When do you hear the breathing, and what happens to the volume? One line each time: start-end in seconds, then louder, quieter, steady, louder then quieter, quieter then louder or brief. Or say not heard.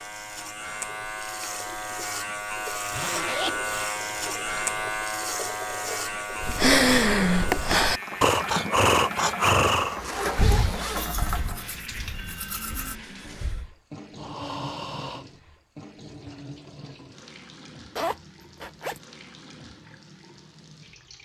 6.4-15.2 quieter then louder.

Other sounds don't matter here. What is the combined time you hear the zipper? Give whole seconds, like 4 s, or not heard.
3 s.